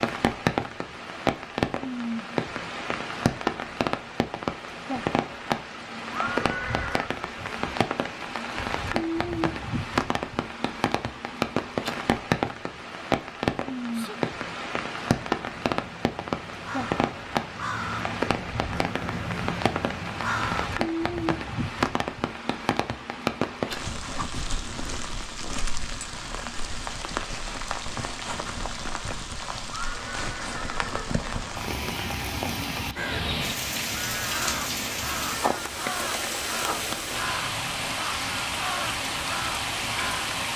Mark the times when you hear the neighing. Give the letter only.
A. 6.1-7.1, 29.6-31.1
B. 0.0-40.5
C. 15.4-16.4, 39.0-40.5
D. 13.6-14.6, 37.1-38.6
A.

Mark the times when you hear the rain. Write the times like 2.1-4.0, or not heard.
0.0-40.5.